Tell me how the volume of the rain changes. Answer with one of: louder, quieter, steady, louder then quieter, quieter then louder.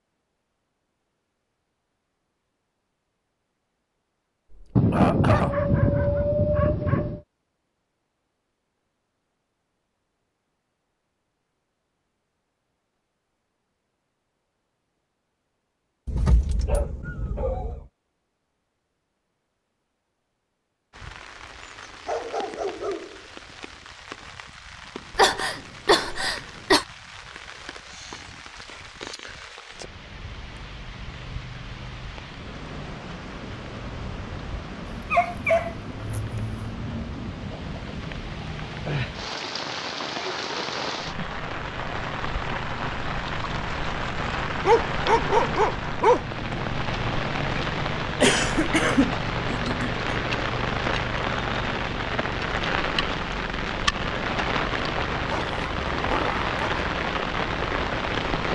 louder.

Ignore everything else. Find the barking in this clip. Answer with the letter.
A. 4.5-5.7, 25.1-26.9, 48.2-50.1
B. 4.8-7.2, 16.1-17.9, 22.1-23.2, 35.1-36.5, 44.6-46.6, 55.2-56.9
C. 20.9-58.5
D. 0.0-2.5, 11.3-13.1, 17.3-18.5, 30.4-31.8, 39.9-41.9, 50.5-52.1
B.